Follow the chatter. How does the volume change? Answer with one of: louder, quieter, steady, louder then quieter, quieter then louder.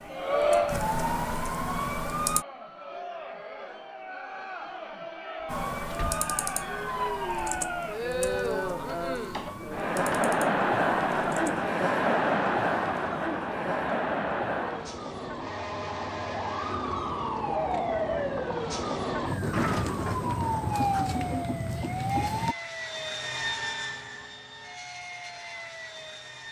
quieter then louder.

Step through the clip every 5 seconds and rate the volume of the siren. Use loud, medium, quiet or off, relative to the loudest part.
loud, medium, medium, loud, loud, off.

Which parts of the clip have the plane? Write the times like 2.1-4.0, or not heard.
22.1-26.4.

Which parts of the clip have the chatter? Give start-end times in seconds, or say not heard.
0.1-14.9.